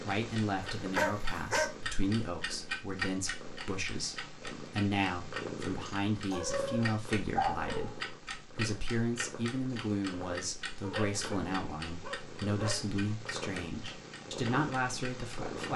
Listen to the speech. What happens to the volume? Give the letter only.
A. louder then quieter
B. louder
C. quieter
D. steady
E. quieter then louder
D.